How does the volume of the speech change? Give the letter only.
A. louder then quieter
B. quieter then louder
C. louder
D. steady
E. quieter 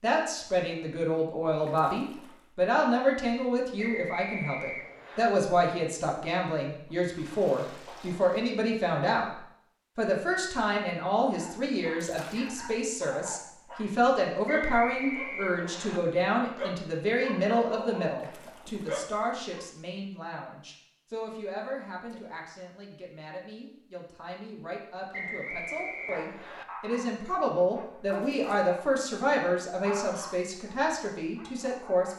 B.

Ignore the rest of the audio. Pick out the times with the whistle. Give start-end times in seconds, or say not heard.
3.8-5.3, 14.4-16.0, 25.1-26.6.